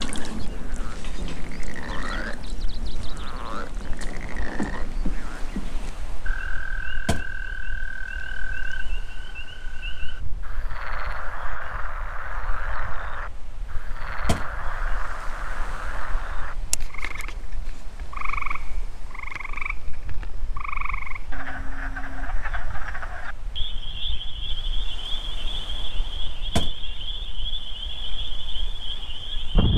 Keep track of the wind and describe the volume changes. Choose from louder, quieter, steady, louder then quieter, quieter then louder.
steady.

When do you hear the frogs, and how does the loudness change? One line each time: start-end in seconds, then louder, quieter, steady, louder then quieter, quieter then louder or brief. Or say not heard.
0.0-29.7 steady.